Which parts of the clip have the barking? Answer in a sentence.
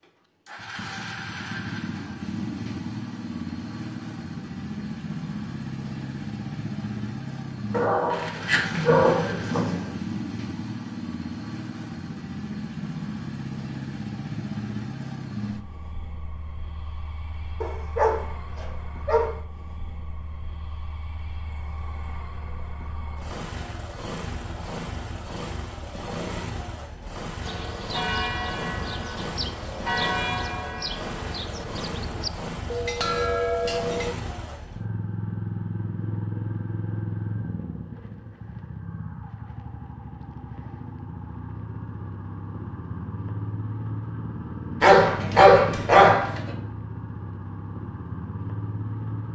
The barking can be heard from 7.7 to 9.9 s, from 17.6 to 19.3 s and from 44.8 to 46.5 s.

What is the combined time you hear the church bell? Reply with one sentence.
You can hear the church bell for 7 seconds altogether.